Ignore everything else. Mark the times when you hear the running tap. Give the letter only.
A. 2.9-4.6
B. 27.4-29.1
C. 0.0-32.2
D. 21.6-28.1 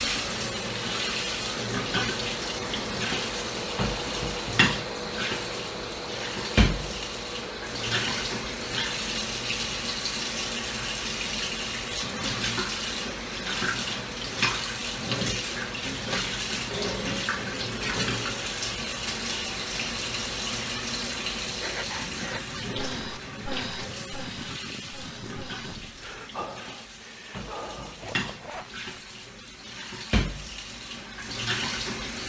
C.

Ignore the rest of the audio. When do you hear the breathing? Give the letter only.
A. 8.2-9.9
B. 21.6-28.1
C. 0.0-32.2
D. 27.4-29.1
B.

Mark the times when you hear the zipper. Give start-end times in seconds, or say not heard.
27.4-29.1.